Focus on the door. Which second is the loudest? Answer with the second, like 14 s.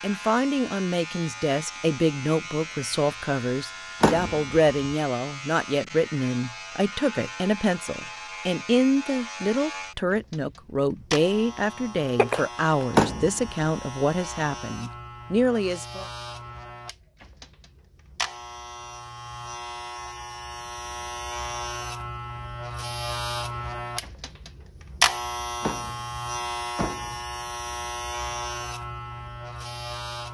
13 s.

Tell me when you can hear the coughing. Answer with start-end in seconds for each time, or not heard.
12.2-12.8.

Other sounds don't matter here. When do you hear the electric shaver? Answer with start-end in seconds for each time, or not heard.
0.0-30.3.